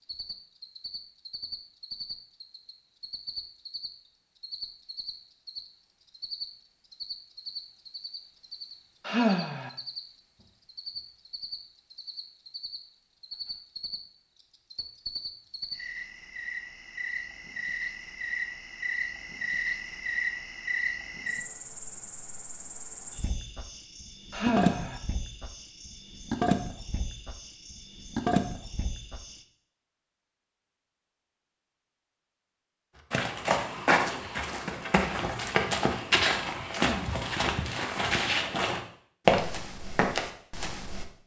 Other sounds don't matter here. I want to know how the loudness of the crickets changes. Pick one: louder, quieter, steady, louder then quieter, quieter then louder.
louder.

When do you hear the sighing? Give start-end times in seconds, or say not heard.
9.1-9.7, 24.3-25.0, 36.8-37.2.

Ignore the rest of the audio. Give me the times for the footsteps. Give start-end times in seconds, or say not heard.
33.1-41.0.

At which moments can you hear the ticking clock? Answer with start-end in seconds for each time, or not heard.
not heard.